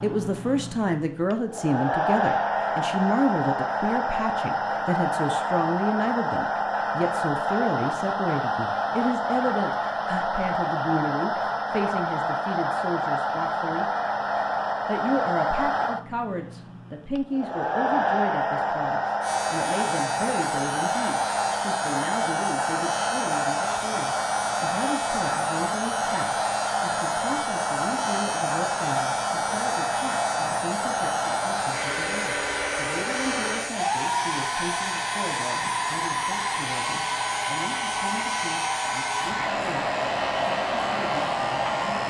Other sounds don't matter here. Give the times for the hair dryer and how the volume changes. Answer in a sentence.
The hair dryer can be heard from 0.0 to 42.0 s, at a steady volume.